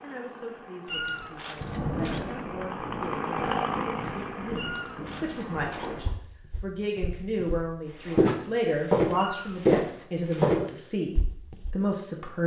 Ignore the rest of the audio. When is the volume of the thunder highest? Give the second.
2 s.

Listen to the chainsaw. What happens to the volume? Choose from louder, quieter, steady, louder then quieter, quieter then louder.
louder then quieter.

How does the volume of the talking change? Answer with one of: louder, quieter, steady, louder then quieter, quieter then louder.
louder.